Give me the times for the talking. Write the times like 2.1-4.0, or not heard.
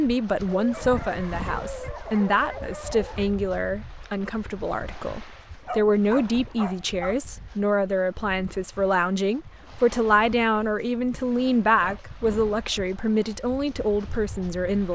0.0-14.9.